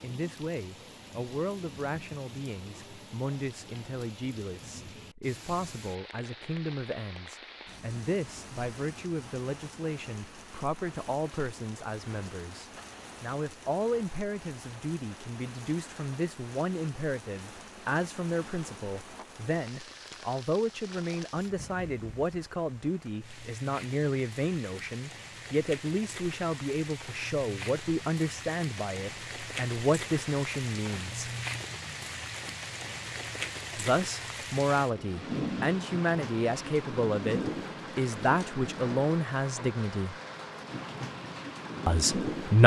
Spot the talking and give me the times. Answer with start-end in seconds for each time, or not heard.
0.0-31.3, 33.8-40.1, 41.9-42.6.